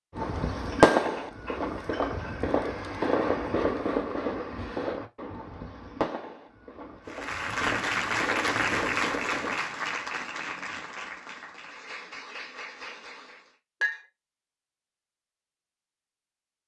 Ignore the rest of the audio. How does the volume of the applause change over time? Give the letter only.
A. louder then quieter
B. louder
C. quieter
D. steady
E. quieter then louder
C.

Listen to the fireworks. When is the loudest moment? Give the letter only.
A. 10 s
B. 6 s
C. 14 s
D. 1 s
D.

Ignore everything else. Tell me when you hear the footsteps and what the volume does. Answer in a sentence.
You can't hear the footsteps here.